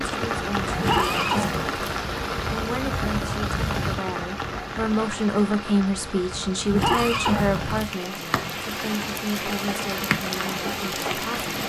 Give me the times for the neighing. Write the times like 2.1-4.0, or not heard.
0.7-2.0, 6.7-8.0.